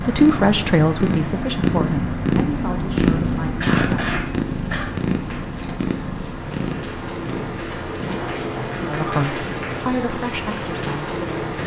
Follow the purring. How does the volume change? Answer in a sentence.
The volume of the purring goes down.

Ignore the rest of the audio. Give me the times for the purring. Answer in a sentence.
The purring can be heard from 0.0 to 11.6 s.